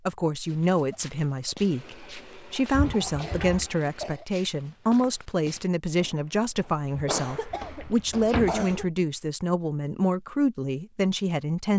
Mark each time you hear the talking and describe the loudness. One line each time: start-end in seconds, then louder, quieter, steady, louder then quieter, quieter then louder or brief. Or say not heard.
0.1-11.7 steady.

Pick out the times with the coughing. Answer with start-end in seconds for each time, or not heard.
2.9-4.2, 7.0-8.8.